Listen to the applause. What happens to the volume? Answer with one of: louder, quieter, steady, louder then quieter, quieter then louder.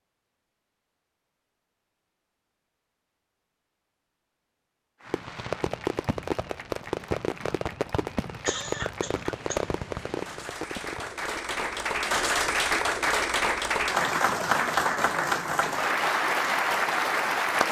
louder.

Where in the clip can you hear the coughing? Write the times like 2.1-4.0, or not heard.
8.2-9.7.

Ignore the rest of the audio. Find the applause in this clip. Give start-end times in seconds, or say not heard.
5.0-17.6.